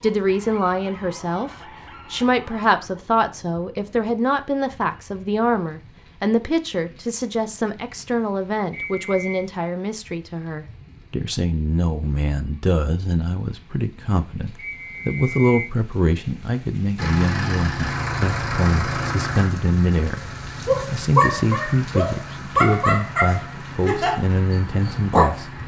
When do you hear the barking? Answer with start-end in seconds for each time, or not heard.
0.0-3.0, 20.1-25.4.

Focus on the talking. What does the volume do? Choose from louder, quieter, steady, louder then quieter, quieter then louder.
steady.